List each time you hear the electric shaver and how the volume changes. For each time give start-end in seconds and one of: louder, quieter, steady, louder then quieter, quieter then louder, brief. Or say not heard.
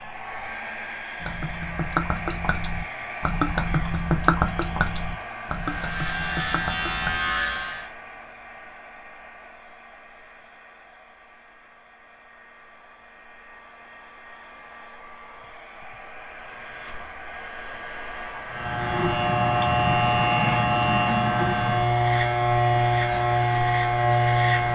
5.5-7.9 brief
18.4-24.7 steady.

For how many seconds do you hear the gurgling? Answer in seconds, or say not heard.
6 s.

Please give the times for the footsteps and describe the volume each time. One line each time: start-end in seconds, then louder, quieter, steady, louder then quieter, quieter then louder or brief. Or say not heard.
not heard.